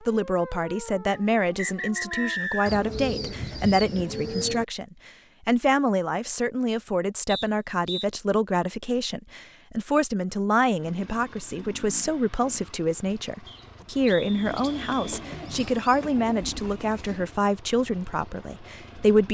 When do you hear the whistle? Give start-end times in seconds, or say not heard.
1.1-2.8, 7.2-8.1, 13.4-15.2.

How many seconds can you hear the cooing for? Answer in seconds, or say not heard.
5 s.